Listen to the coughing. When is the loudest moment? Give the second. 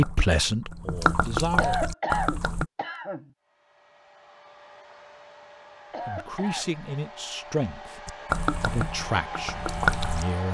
2 s.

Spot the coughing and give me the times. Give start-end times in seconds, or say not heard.
1.6-3.2, 5.9-6.8.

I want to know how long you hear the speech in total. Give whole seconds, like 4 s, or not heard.
6 s.